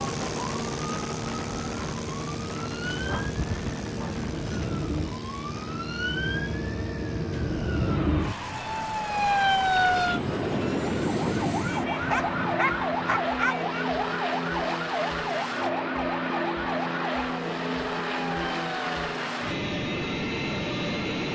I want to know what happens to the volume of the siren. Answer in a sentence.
The loudness of the siren goes up, then down.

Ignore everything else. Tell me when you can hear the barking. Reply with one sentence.
You can hear the barking from 2.9 to 4.7 s and from 11.9 to 13.7 s.